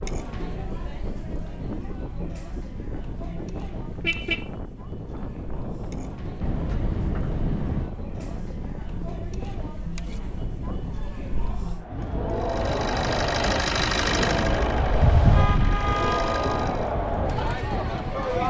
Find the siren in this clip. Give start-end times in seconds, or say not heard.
not heard.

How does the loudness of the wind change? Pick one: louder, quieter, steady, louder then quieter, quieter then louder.
louder.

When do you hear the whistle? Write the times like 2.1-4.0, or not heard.
not heard.